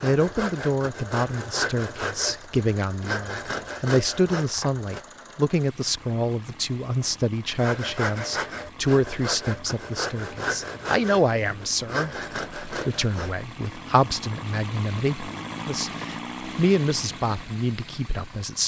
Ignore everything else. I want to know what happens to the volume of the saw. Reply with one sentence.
The loudness of the saw stays about the same.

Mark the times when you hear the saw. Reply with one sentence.
The saw can be heard from 0.0 to 5.0 s and from 7.5 to 13.4 s.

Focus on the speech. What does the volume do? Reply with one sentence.
The volume of the speech stays about the same.